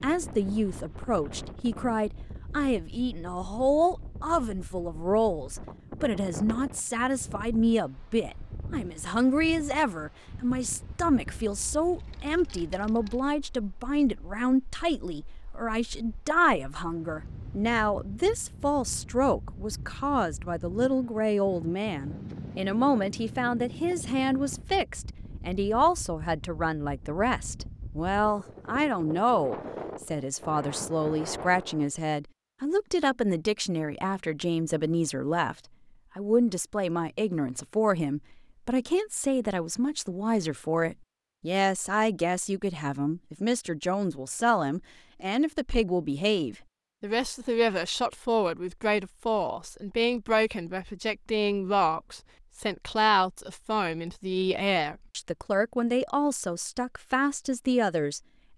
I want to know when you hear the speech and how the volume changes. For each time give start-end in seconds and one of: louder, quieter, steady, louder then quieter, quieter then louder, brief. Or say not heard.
0.0-35.5 steady
36.1-58.5 steady.